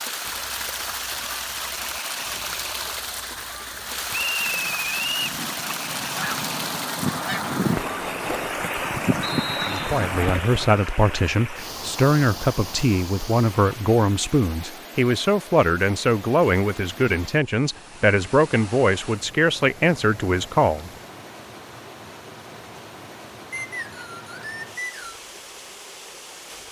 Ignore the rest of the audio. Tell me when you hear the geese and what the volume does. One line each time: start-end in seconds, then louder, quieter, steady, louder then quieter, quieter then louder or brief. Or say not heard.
0.2-10.4 louder.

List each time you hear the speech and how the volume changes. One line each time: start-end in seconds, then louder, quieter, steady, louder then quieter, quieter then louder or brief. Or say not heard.
9.7-20.9 steady.